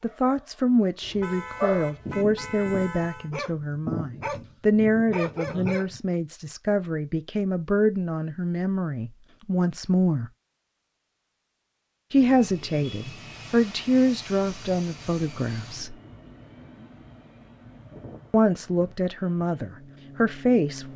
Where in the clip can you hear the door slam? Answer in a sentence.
You can't hear the door slam here.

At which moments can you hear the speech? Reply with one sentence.
The speech can be heard from 0.0 to 10.3 s, from 12.1 to 15.9 s and from 18.3 to 20.9 s.